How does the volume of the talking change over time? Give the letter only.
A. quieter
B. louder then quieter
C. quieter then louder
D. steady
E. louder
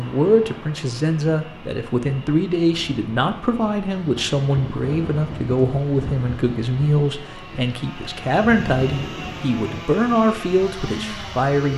D.